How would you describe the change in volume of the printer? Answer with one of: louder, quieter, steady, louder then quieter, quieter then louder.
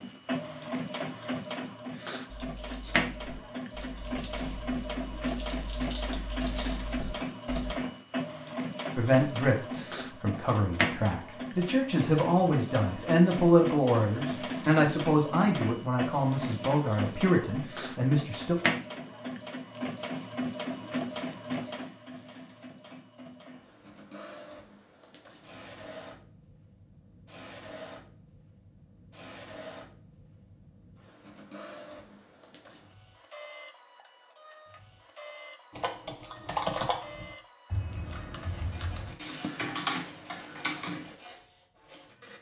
quieter.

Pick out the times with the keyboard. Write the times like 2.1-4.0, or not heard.
2.3-7.8, 35.7-41.1.